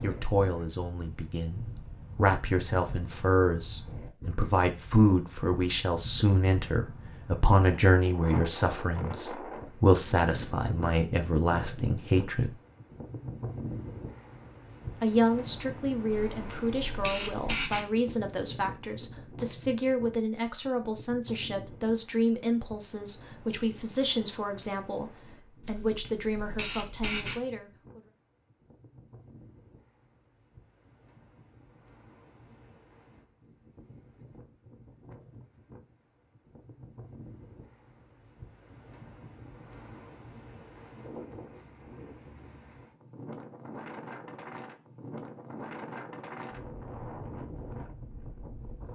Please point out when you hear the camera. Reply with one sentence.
You can hear the camera from 16.1 to 17.9 s and from 25.6 to 27.4 s.